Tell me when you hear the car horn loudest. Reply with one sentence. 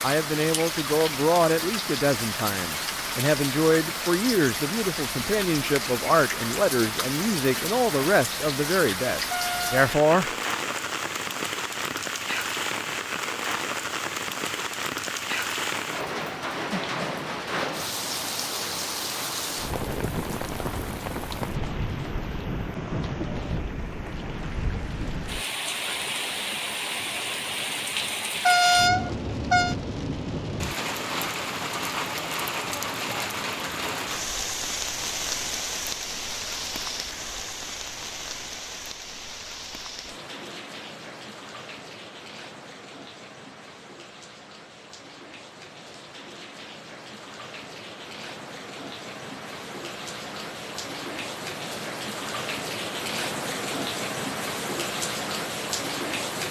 The volume of the car horn peaks at 29 seconds.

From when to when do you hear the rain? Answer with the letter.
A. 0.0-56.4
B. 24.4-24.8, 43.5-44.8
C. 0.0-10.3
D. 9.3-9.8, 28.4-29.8
A.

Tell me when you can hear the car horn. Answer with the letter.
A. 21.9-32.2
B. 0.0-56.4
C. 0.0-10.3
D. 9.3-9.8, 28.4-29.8
D.